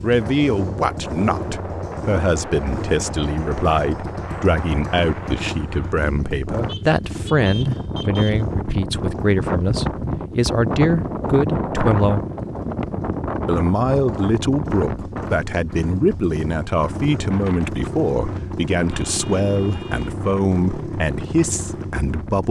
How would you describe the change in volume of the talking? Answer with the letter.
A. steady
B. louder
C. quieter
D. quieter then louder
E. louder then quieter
A.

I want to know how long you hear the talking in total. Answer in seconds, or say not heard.
21 s.